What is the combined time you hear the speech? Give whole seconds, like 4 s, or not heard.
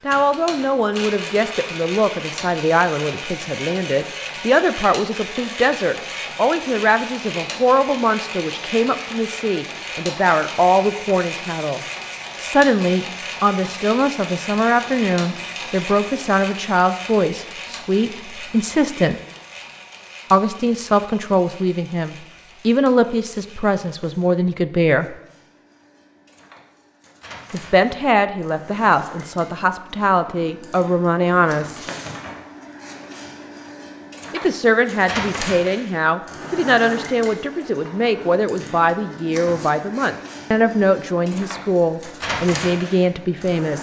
37 s.